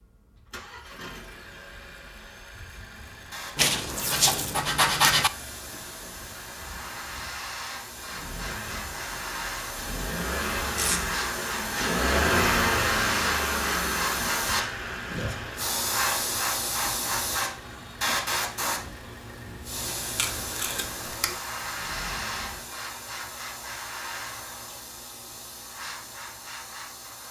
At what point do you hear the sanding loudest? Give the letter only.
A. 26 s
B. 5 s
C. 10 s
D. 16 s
B.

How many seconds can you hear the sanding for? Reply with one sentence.
The sanding can be heard for 2 seconds in total.